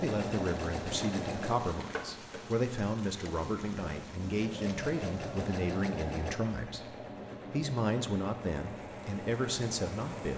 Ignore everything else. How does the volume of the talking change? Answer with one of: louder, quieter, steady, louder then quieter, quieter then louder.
steady.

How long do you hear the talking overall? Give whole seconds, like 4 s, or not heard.
10 s.